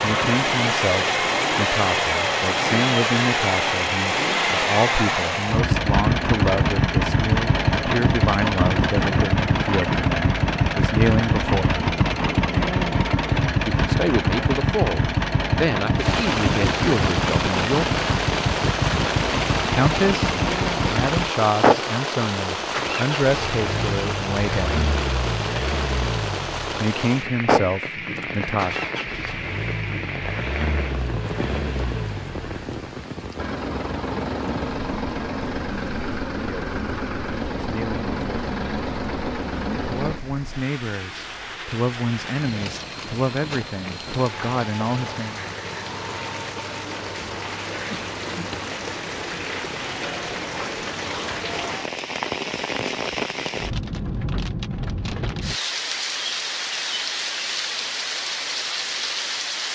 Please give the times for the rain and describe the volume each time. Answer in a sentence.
The rain can be heard from 15.9 to 59.7 s, getting quieter then louder.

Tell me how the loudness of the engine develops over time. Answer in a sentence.
The loudness of the engine goes down.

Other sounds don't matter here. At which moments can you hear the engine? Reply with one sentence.
You can hear the engine from 0.0 to 40.2 s.